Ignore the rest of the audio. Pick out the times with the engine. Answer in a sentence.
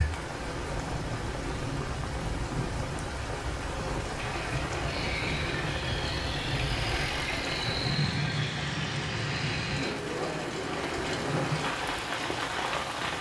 You can hear the engine from 4.2 to 9.9 s.